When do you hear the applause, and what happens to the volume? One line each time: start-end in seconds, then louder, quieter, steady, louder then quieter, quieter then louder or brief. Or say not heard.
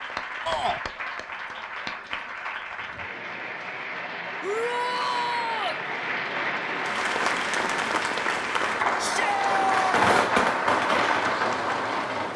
0.0-12.3 louder.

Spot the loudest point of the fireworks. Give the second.
10 s.